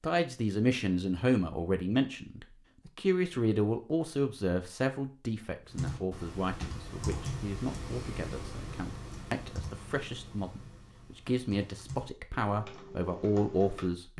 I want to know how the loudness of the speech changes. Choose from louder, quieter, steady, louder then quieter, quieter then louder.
quieter then louder.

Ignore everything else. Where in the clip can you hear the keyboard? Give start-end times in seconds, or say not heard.
5.7-13.9.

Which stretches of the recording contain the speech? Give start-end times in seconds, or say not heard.
0.0-14.1.